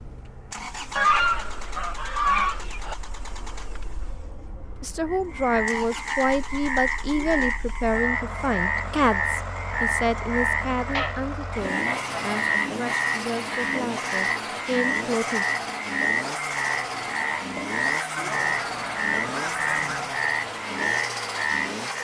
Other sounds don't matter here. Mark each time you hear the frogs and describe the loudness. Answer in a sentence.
You can hear the frogs from 5.0 to 21.9 s, at a steady volume.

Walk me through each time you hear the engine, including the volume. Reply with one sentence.
The engine can be heard from 0.0 to 21.9 s, getting louder.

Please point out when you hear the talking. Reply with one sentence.
The talking can be heard from 4.8 to 15.4 s.